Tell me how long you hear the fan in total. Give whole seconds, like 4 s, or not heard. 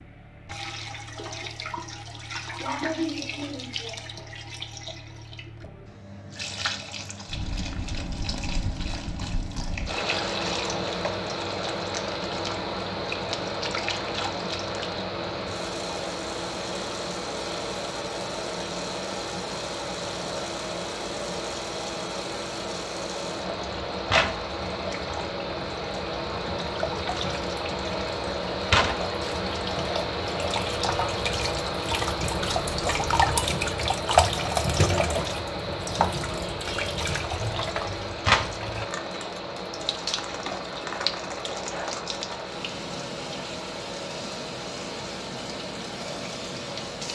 40 s.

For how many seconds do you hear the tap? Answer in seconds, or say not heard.
47 s.